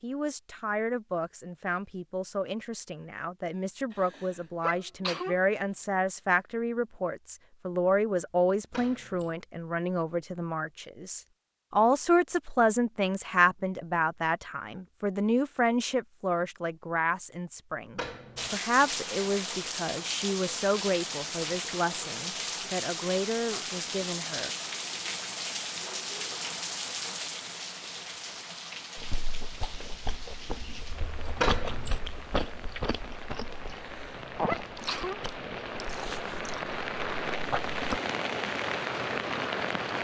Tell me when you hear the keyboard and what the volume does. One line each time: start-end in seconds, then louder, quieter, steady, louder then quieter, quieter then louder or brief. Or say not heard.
not heard.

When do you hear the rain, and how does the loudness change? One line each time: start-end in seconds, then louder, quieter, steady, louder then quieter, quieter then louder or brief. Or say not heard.
18.4-39.9 quieter then louder.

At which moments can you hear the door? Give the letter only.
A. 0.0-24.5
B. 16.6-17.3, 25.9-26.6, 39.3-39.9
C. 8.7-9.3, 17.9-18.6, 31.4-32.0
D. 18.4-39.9
C.